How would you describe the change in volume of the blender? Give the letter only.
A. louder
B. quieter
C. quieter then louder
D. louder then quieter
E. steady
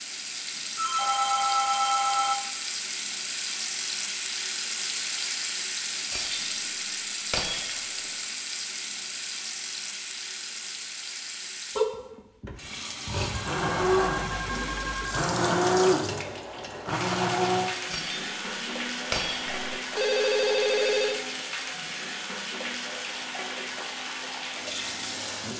B.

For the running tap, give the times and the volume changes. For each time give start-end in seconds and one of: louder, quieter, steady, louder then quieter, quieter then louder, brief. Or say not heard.
0.0-25.5 steady.